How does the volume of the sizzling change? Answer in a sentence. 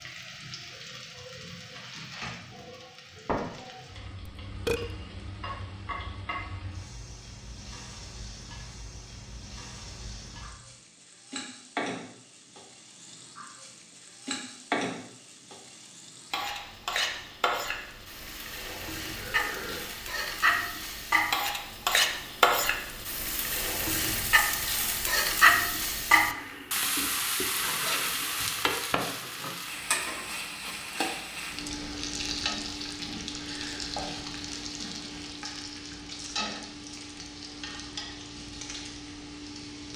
The loudness of the sizzling goes up, then down.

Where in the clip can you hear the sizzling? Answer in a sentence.
You can hear the sizzling from 0.0 to 39.9 s.